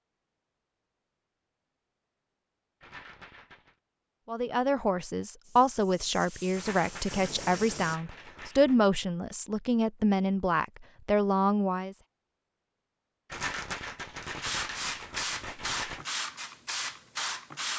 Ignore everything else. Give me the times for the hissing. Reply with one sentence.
You can hear the hissing from 5.4 to 8.0 s and from 14.2 to 17.7 s.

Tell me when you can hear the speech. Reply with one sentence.
The speech can be heard from 4.2 to 11.9 s.